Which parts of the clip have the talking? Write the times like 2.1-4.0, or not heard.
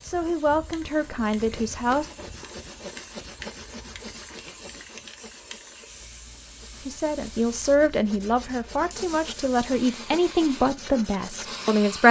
0.1-2.0, 6.8-12.0.